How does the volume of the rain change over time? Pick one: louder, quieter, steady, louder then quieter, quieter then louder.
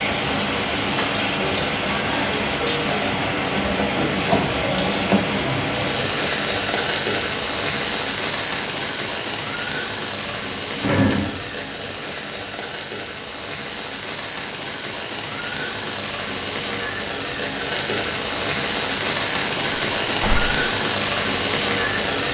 quieter then louder.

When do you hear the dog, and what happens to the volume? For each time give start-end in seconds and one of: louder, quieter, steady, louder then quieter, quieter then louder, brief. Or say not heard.
not heard.